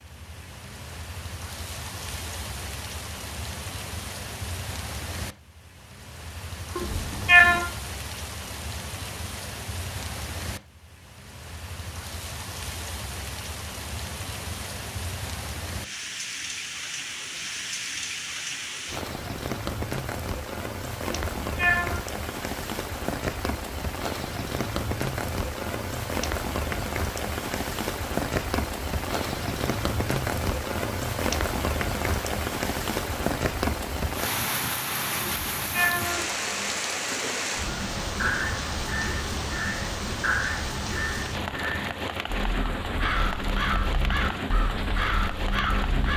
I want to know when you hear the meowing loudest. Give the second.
7 s.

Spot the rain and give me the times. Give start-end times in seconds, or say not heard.
0.0-46.1.